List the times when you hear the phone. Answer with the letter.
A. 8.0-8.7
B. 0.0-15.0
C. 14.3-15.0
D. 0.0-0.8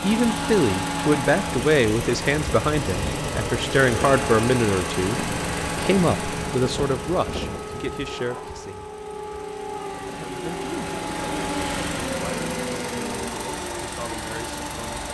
A.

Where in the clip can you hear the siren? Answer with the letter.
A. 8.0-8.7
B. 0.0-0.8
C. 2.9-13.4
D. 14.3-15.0
C.